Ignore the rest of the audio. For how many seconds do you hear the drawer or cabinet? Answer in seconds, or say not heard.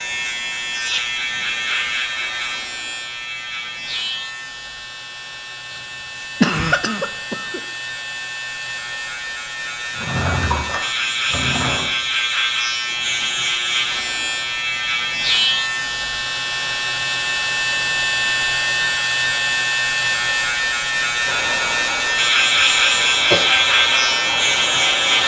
2 s.